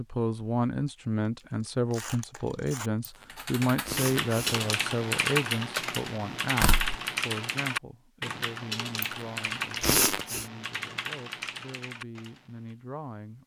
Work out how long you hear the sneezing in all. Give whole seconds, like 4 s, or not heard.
3 s.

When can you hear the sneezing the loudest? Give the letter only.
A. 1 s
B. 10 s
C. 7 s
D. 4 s
B.